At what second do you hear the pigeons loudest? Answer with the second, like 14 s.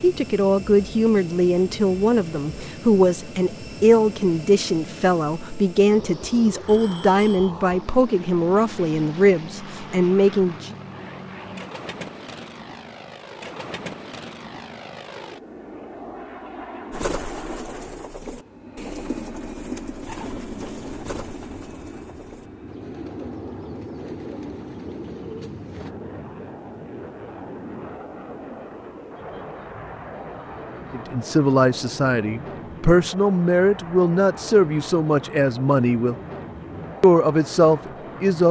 17 s.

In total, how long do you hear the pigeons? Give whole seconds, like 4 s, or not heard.
9 s.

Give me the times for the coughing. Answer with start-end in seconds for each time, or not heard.
not heard.